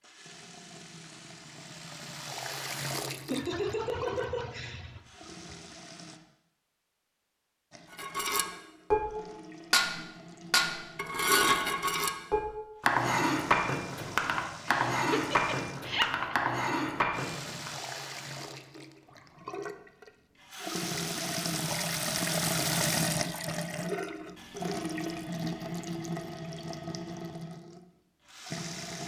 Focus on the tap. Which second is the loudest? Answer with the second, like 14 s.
23 s.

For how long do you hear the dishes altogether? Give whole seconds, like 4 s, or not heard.
10 s.